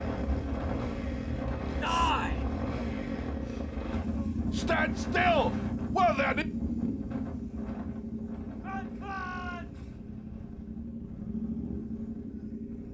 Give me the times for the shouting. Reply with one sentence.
You can hear the shouting from 1.8 to 2.4 s, from 4.5 to 6.5 s and from 8.6 to 9.8 s.